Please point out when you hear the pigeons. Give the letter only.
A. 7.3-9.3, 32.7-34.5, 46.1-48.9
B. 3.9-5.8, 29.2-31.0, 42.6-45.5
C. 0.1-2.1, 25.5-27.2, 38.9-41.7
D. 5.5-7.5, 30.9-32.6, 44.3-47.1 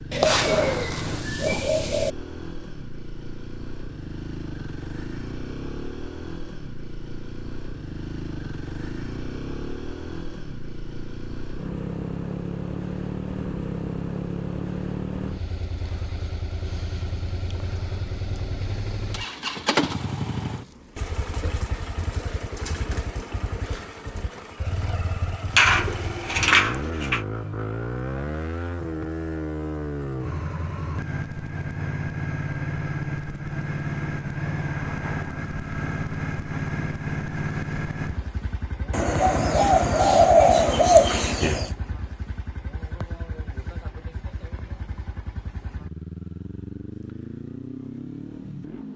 C.